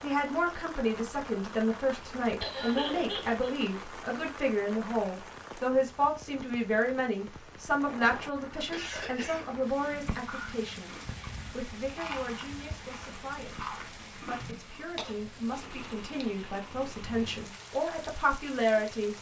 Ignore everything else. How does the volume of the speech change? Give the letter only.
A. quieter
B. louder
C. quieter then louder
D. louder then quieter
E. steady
C.